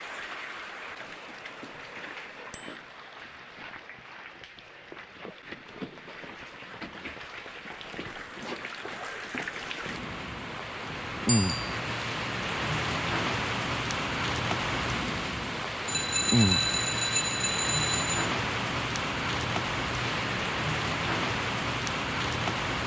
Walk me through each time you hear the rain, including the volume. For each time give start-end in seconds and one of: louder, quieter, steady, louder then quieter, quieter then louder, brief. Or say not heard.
0.0-22.8 louder.